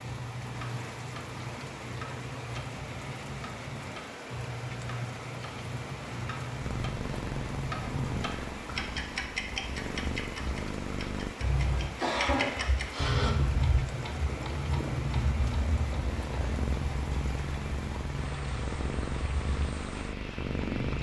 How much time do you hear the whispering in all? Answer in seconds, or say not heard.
not heard.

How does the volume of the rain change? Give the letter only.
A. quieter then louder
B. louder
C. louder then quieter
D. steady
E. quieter
D.